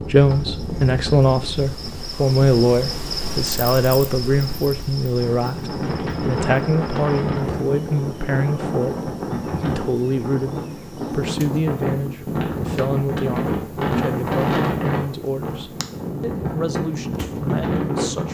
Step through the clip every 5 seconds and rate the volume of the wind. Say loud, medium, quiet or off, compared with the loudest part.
medium, loud, loud, loud.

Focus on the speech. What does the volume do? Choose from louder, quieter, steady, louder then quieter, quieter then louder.
quieter.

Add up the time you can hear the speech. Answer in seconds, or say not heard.
18 s.